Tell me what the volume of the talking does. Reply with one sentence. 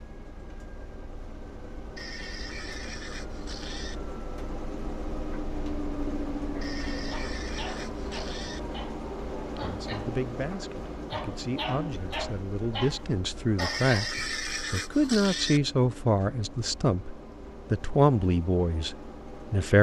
The loudness of the talking goes up.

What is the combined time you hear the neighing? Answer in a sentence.
The neighing can be heard for 6 seconds in total.